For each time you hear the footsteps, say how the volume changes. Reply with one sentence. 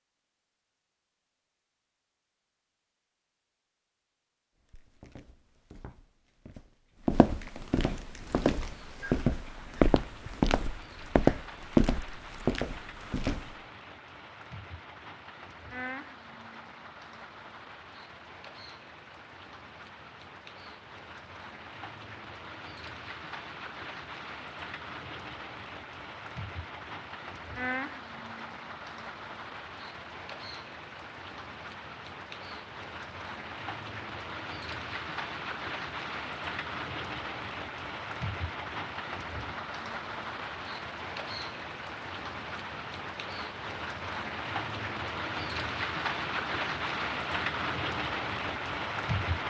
The footsteps can be heard from 4.7 to 13.6 s, getting louder.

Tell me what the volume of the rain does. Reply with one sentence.
The volume of the rain goes up.